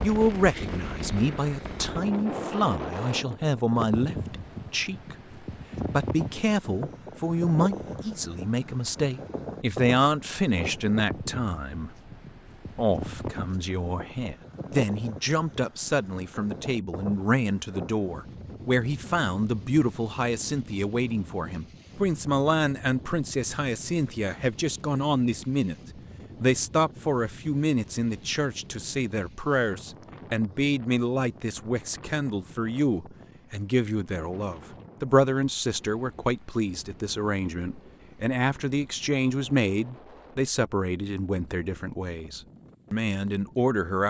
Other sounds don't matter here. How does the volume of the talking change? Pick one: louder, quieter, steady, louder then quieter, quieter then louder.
steady.